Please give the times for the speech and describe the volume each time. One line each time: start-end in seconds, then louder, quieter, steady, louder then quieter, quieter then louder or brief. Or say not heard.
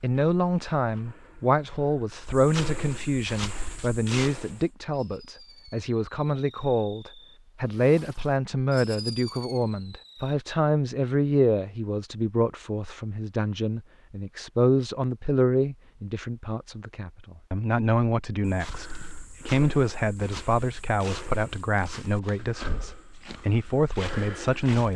0.0-24.9 steady.